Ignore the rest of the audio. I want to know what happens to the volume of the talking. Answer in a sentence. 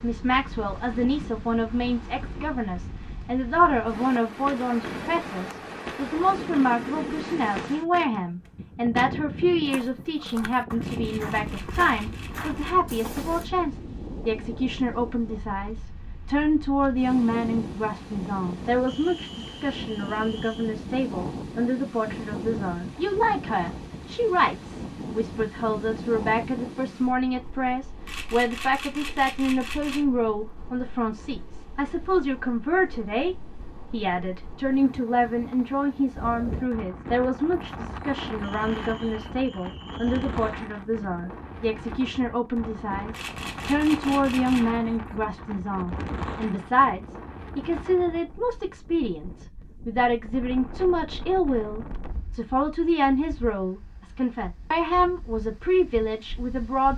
The volume of the talking stays about the same.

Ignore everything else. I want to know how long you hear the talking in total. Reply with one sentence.
You can hear the talking for 57 seconds altogether.